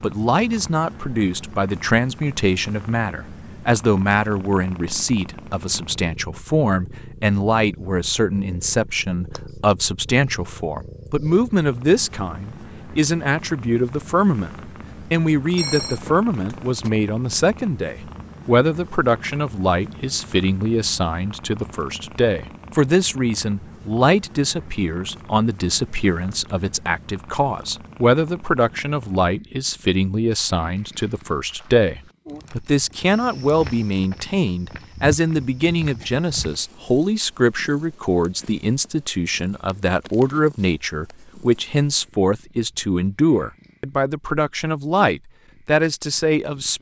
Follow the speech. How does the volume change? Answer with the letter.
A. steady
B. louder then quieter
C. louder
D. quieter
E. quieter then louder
A.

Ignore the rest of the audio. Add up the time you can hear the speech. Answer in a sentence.
The speech can be heard for 47 seconds in total.